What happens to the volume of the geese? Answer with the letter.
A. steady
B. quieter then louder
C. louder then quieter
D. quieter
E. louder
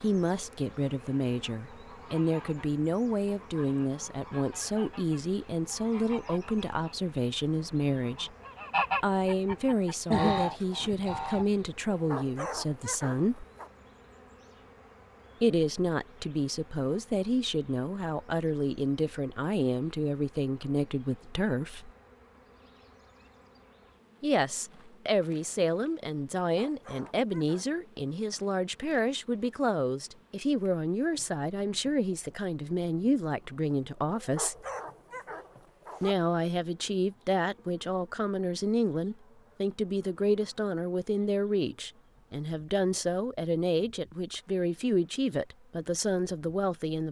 E.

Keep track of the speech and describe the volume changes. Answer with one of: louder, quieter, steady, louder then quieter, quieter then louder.
steady.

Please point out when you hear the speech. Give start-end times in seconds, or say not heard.
0.0-8.3, 9.0-13.4, 15.4-21.9, 24.2-34.5, 36.0-47.0.